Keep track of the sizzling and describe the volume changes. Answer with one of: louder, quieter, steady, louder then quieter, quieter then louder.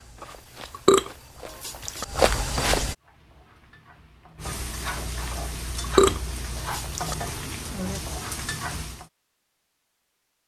louder.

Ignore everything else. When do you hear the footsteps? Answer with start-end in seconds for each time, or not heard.
0.0-3.0.